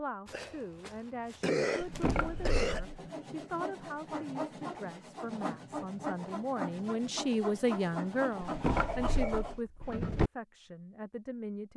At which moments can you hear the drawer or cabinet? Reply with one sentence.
The drawer or cabinet can be heard from 1.8 to 2.8 s and from 8.4 to 10.3 s.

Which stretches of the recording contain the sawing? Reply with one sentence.
The sawing can be heard from 2.1 to 10.2 s.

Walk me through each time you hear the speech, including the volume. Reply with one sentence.
You can hear the speech from 0.0 to 11.7 s, getting louder then quieter.